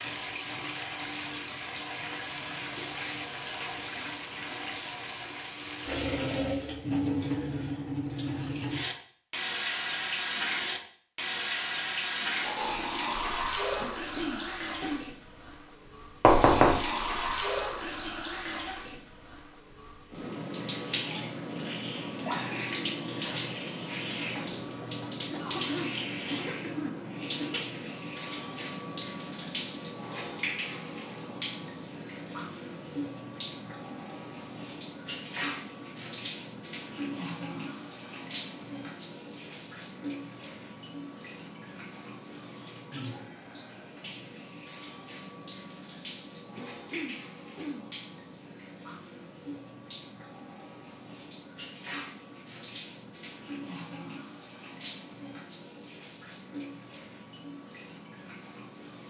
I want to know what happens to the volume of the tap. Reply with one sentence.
The volume of the tap goes down.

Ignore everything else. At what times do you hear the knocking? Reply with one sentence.
The knocking can be heard from 16.2 to 16.9 s.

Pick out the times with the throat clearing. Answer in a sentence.
The throat clearing can be heard from 13.8 to 15.0 s, from 25.3 to 27.8 s and from 46.5 to 47.8 s.